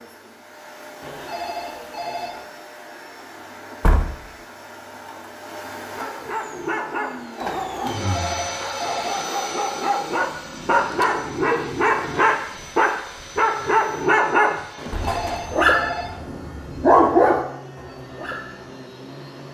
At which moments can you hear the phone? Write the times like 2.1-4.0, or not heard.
1.0-2.5, 7.8-9.3, 14.8-16.2.